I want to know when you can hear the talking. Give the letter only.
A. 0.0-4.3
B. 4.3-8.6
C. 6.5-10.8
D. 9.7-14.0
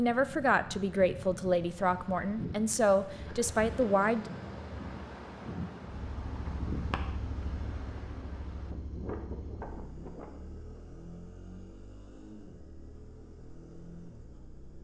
A.